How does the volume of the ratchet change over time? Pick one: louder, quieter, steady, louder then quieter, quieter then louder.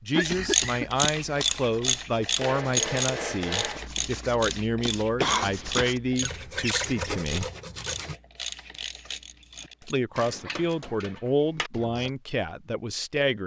quieter.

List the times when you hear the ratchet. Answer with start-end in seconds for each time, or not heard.
0.2-12.1.